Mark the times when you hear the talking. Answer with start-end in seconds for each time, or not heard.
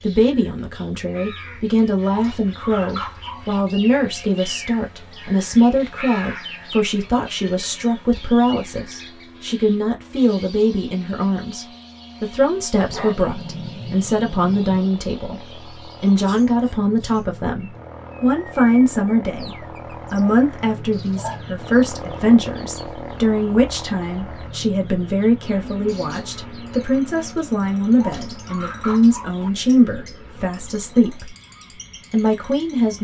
0.0-31.4, 32.1-32.9.